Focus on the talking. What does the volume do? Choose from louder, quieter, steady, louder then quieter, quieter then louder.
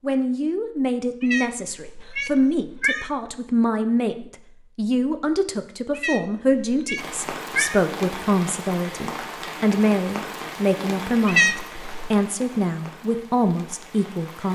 steady.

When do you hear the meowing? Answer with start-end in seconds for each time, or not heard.
1.2-3.1, 6.0-7.8, 11.2-12.1.